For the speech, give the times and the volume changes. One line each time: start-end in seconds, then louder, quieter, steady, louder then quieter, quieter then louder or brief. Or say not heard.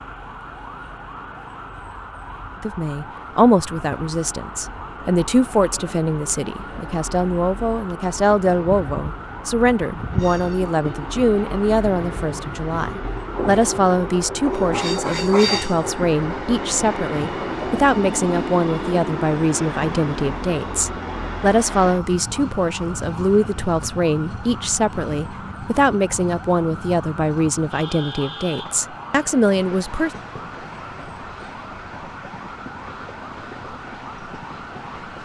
2.6-30.1 steady.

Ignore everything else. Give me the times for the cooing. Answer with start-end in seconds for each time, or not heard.
not heard.